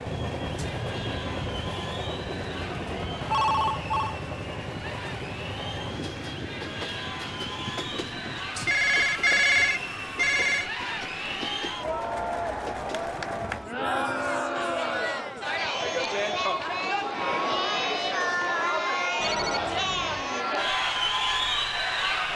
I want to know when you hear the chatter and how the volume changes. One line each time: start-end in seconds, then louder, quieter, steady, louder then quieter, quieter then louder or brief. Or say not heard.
0.0-22.3 louder.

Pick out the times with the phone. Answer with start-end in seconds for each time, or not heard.
3.2-4.2, 8.6-10.7, 19.2-20.3.